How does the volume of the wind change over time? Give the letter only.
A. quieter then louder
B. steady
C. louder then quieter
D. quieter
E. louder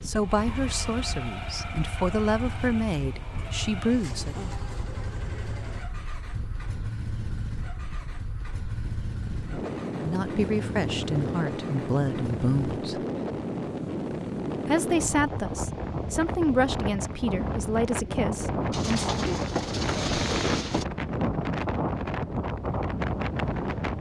E.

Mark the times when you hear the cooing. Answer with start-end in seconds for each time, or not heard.
18.7-20.9.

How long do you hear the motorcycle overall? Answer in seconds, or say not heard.
13 s.